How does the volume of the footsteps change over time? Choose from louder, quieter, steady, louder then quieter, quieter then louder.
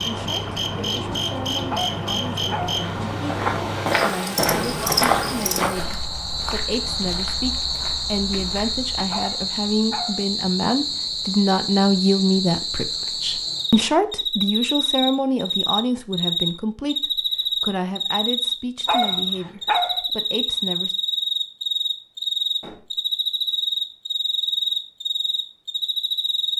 quieter.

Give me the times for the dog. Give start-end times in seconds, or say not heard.
1.7-2.8, 9.1-10.2, 18.9-20.1.